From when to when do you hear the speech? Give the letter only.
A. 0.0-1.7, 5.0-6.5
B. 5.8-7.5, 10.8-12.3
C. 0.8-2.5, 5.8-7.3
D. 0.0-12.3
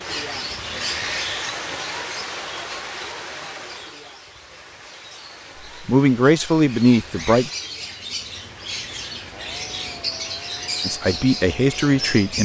B.